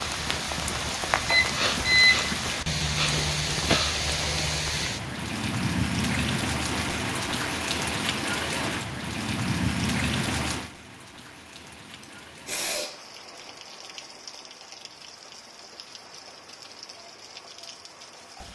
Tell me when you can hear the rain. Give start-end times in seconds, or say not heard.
0.0-18.5.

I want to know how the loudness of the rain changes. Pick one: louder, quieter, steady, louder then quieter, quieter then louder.
quieter.